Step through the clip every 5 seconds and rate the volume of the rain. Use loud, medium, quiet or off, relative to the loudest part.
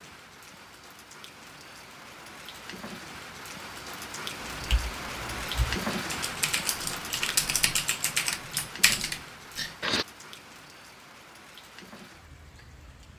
medium, loud, quiet.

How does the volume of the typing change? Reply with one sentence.
The volume of the typing goes up.